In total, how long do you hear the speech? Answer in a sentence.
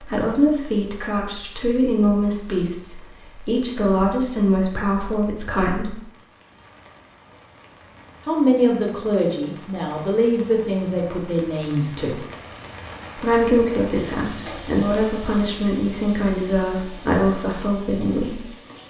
The speech can be heard for 15 seconds in total.